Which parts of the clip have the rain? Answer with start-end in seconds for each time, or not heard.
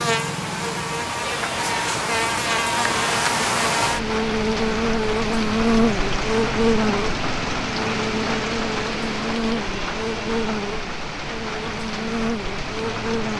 0.0-13.3.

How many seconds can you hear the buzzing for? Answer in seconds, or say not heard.
13 s.